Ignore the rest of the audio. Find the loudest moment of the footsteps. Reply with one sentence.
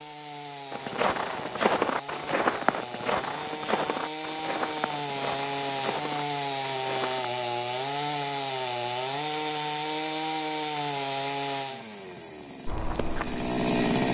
The loudest moment of the footsteps is at 2 seconds.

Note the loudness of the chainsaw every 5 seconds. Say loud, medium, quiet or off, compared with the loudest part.
medium, loud, loud.